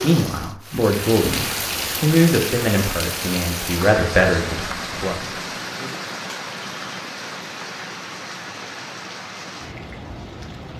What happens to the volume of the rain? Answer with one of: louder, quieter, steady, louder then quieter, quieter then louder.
quieter.